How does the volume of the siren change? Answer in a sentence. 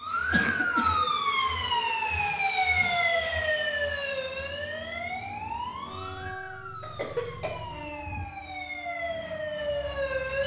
The volume of the siren goes down, then up.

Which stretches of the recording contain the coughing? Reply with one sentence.
The coughing can be heard from 0.3 to 1.1 s and from 6.8 to 7.6 s.